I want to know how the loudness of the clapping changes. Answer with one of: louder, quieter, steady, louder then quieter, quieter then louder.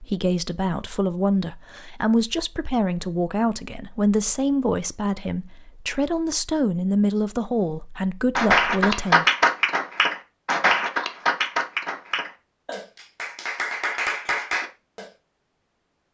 quieter then louder.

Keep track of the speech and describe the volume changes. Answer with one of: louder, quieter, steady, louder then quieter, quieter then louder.
steady.